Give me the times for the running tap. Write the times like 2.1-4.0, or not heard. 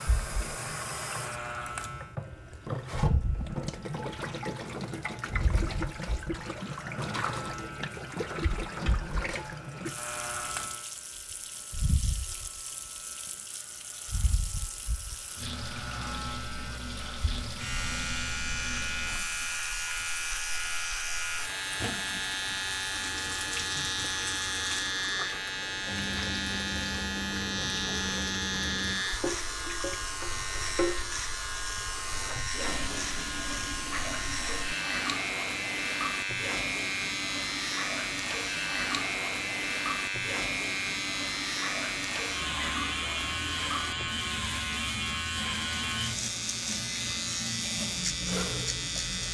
0.0-49.2.